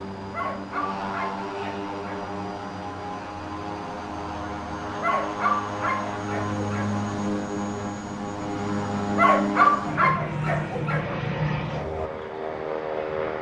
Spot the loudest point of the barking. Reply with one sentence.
The loudest moment of the barking is at 10 seconds.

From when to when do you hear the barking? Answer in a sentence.
The barking can be heard from 0.3 to 2.3 s, from 5.0 to 7.0 s and from 9.2 to 11.2 s.